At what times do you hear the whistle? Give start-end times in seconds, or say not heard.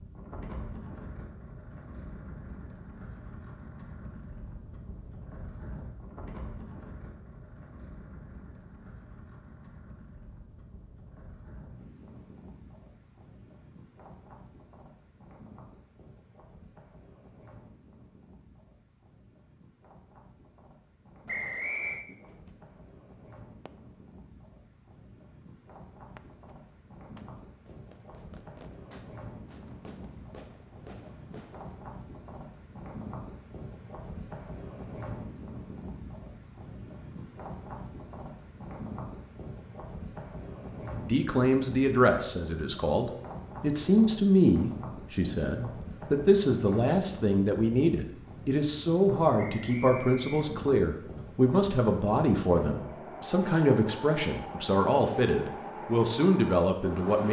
21.2-22.1, 49.4-50.5.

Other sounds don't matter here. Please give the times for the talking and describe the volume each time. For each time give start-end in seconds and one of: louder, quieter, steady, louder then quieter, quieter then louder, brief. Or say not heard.
40.9-57.2 steady.